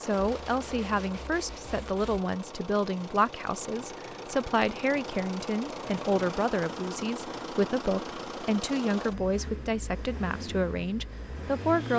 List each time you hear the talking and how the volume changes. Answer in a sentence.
You can hear the talking from 0.0 to 11.9 s, at a steady volume.